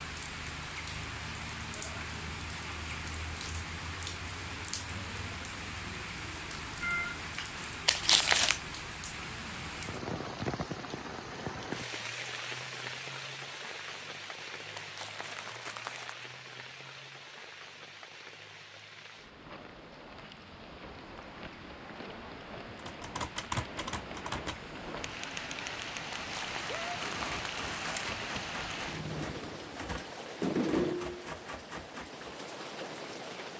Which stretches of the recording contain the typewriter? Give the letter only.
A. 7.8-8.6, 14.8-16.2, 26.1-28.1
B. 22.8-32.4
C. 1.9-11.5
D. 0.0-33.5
B.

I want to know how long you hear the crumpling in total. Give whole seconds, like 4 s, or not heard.
4 s.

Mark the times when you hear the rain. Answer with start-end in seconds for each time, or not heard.
0.0-33.5.